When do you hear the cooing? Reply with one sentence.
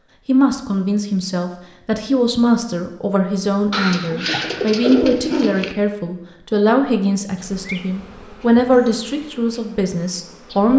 You can hear the cooing from 3.7 to 5.8 s.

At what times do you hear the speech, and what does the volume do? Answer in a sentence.
You can hear the speech from 0.2 to 10.7 s, at a steady volume.